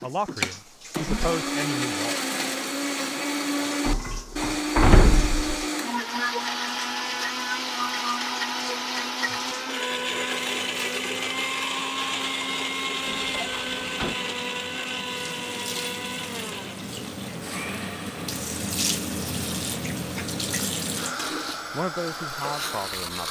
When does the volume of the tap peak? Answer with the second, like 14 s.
19 s.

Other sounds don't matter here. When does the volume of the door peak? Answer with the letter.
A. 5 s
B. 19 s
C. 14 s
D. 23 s
A.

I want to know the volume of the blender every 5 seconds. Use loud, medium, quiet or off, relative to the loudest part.
loud, loud, loud, medium, medium.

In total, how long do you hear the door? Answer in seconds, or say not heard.
3 s.